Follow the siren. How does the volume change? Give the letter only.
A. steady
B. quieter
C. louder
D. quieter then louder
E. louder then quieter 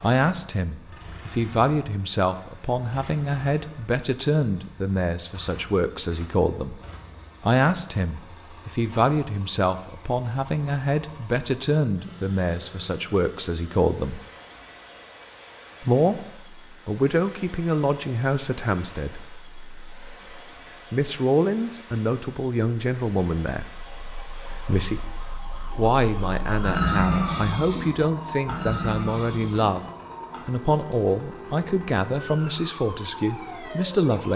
E.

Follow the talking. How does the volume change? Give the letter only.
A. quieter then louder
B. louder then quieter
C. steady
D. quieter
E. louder
C.